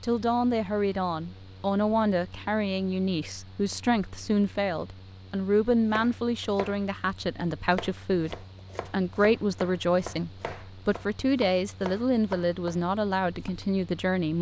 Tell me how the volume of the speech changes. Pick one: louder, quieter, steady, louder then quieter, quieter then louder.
steady.